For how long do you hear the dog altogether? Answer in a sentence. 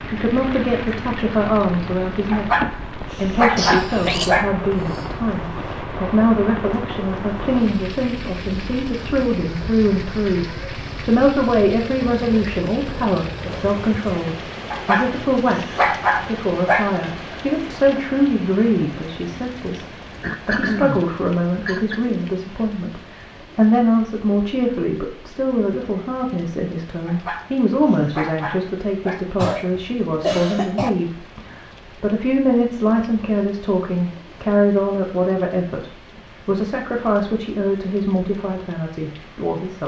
The dog can be heard for 7 seconds in total.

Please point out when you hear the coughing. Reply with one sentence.
You can hear the coughing from 3.5 to 5.0 s, from 20.2 to 22.0 s and from 29.4 to 30.9 s.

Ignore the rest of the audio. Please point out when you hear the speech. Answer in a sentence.
You can hear the speech from 0.0 to 19.9 s and from 20.4 to 39.8 s.